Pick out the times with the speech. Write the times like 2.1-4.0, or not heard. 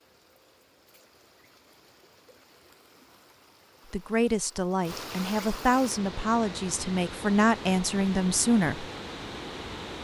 3.9-8.8.